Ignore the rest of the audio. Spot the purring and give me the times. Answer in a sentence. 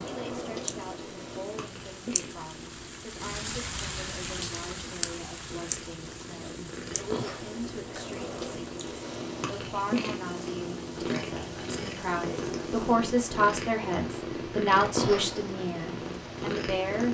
The purring can be heard from 0.0 to 17.0 s.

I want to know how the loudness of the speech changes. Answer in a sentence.
The loudness of the speech goes up.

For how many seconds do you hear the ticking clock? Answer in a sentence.
The ticking clock can't be heard in this clip.